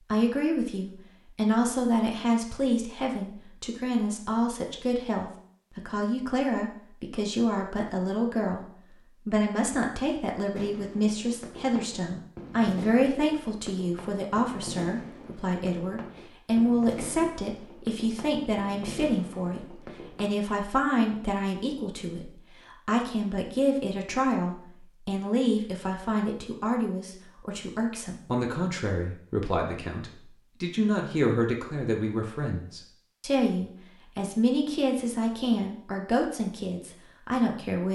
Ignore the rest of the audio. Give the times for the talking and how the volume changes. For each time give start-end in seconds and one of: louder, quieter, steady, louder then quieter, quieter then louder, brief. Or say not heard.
0.1-8.7 steady
9.2-37.9 steady.